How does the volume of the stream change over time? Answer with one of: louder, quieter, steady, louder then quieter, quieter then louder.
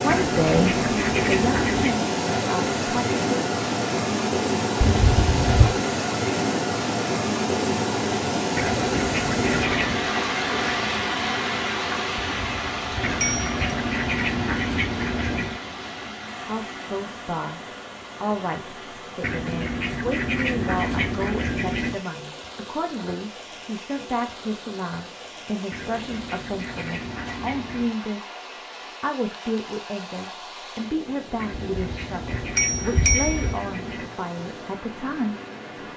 quieter.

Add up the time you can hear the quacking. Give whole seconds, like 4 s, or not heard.
14 s.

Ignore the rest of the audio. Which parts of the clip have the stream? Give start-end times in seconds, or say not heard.
0.0-35.9.